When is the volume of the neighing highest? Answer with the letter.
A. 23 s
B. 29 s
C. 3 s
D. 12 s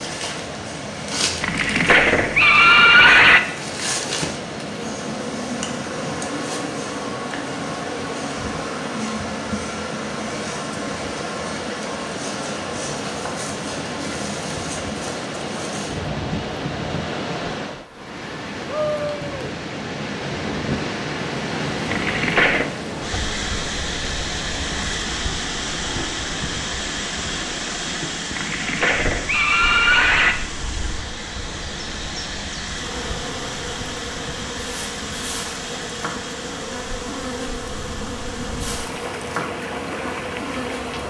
C.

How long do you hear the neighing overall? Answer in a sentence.
The neighing can be heard for 5 seconds in total.